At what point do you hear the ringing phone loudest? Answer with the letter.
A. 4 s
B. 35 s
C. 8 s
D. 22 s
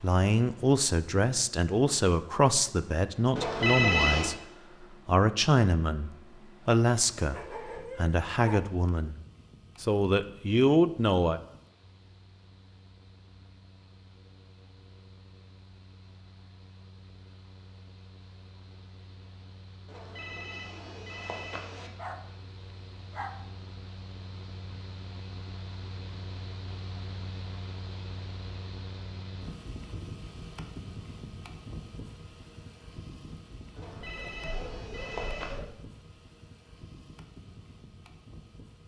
A.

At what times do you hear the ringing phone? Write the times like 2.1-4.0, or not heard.
3.4-4.3, 19.9-21.9, 33.8-35.5.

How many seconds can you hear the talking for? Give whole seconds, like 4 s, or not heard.
11 s.